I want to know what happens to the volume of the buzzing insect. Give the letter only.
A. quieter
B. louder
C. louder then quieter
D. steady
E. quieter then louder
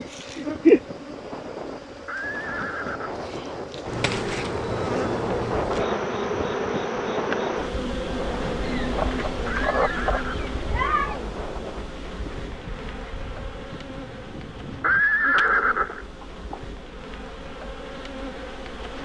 A.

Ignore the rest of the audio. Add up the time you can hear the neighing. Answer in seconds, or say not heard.
4 s.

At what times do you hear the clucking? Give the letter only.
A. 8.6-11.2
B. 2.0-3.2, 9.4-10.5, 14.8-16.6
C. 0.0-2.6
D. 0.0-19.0
A.